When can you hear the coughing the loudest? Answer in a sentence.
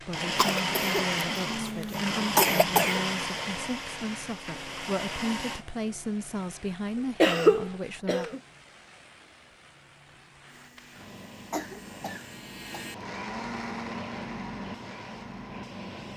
The volume of the coughing peaks at 7 seconds.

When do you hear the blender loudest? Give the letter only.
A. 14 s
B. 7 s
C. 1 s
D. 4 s
C.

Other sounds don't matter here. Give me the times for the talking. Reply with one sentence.
You can hear the talking from 0.0 to 8.4 s.